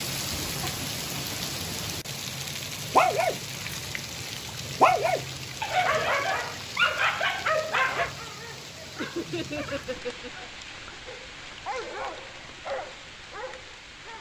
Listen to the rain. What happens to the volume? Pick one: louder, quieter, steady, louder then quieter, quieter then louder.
quieter.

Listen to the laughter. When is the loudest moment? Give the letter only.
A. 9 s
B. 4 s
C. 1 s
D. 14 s
A.